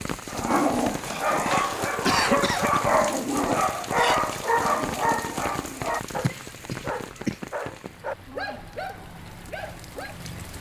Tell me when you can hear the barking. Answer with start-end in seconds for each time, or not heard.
0.2-10.2.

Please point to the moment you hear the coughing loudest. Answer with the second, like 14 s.
2 s.